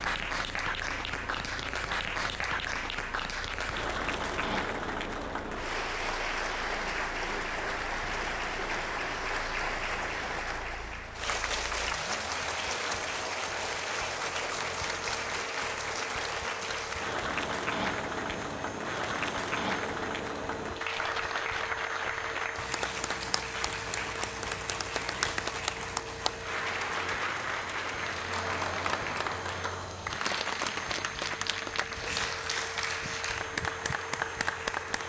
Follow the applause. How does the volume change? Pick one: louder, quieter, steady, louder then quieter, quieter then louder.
steady.